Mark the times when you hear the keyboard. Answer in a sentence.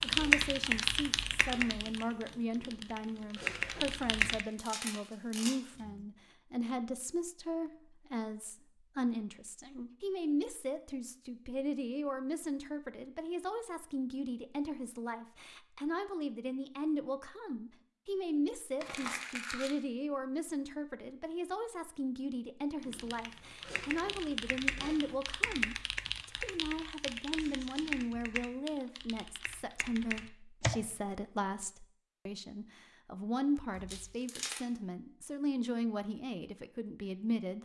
You can hear the keyboard from 0.0 to 4.5 s and from 22.8 to 30.8 s.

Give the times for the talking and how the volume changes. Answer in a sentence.
You can hear the talking from 0.0 to 37.5 s, at a steady volume.